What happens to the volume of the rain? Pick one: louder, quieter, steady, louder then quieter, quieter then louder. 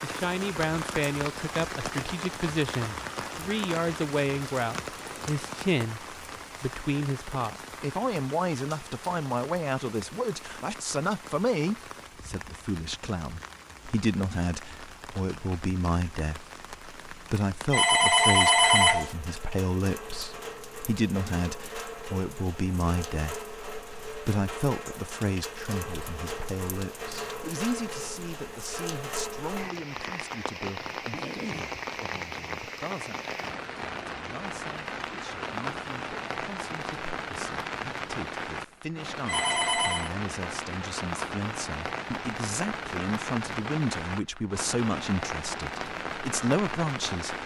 quieter then louder.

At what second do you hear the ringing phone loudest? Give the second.
19 s.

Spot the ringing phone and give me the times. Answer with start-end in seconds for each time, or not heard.
17.7-19.1, 39.2-40.1.